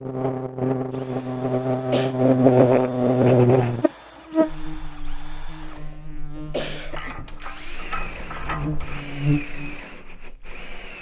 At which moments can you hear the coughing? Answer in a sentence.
The coughing can be heard from 1.0 to 2.1 s and from 5.7 to 7.3 s.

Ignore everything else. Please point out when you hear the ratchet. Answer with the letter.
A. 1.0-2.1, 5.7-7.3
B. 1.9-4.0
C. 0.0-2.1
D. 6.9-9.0
D.